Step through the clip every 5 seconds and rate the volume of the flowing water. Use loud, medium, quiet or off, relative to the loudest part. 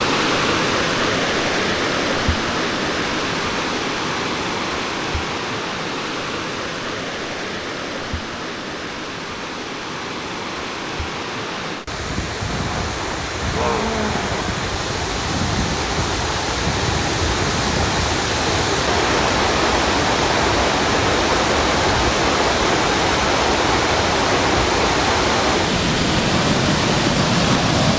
loud, medium, medium, loud, loud, loud.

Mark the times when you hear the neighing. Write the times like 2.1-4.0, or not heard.
not heard.